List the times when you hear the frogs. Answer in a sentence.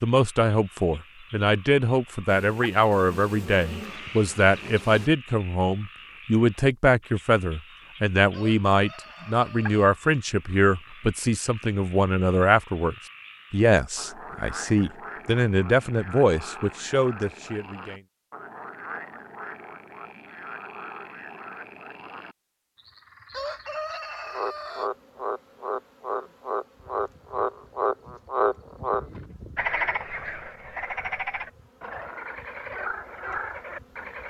You can hear the frogs from 0.1 to 34.2 s.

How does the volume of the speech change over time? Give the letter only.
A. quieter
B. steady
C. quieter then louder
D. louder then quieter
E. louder
B.